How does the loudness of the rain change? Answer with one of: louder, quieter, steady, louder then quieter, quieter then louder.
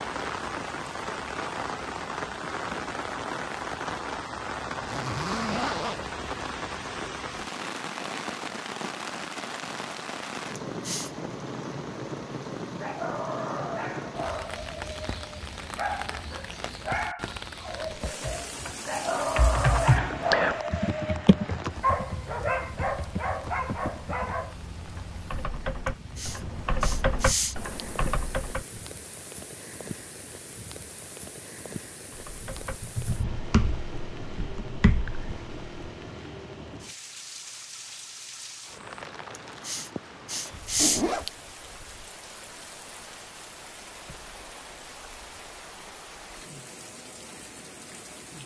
quieter.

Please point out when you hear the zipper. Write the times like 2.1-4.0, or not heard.
4.8-6.1, 40.0-41.3.